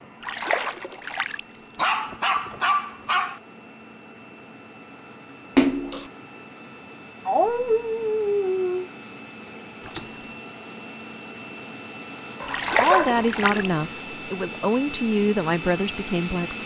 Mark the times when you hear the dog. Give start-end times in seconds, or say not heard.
1.8-3.4, 7.2-8.8, 12.4-13.9.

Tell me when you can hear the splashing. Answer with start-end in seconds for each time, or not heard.
0.2-1.4, 5.5-6.0, 9.8-10.3, 12.4-13.7.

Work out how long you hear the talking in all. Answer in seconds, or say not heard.
4 s.